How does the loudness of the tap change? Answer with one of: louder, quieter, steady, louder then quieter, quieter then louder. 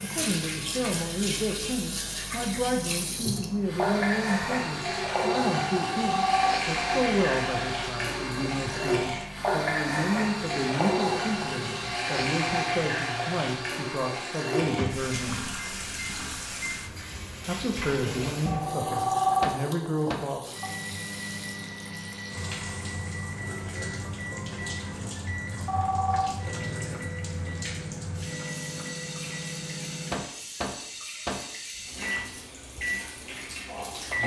quieter.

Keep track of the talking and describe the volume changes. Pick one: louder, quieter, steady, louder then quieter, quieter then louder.
steady.